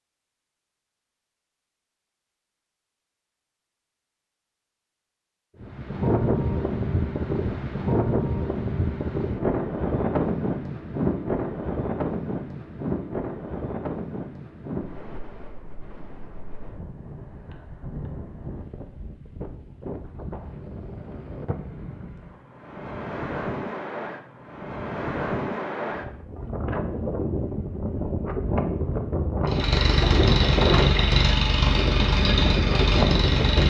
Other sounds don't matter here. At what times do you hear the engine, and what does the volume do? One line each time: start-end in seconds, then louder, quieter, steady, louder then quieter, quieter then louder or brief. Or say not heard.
29.4-33.6 steady.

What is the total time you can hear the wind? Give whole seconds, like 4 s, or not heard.
28 s.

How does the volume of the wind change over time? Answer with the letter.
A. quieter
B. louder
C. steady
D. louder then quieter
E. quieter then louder
E.